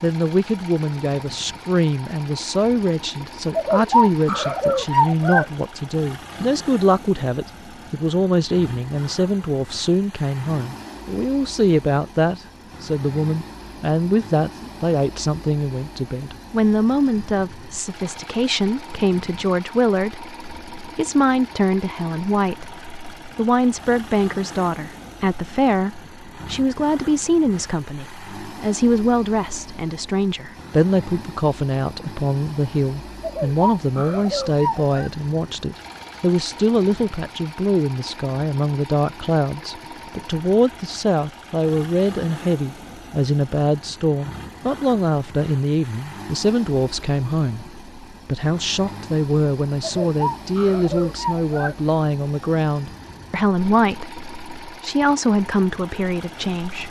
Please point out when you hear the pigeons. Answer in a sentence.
You can hear the pigeons from 3.5 to 5.5 s, from 33.2 to 35.0 s and from 49.8 to 51.8 s.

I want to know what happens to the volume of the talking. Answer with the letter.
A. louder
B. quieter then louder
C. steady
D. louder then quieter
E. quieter
C.